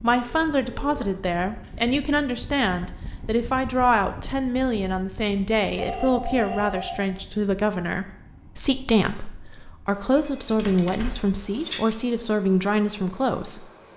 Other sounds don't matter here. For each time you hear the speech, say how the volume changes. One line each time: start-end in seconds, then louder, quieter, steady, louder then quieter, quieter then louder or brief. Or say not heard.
0.0-13.7 steady.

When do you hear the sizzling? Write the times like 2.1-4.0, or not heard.
not heard.